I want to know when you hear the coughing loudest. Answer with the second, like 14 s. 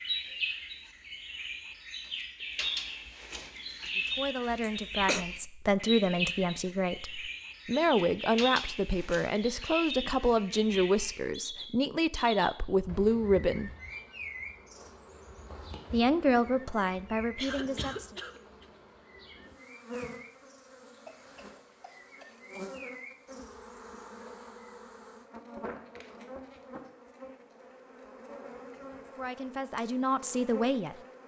5 s.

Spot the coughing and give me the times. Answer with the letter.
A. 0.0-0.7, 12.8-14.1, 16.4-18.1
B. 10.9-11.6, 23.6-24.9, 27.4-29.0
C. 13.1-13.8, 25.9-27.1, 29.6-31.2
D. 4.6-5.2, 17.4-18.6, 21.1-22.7
D.